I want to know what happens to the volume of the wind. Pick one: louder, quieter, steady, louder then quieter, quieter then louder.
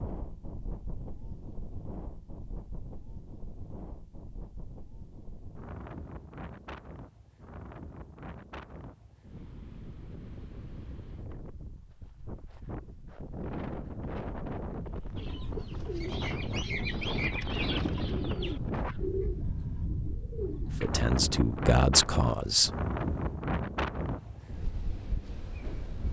louder.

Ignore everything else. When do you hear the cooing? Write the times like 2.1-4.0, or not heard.
15.2-21.0.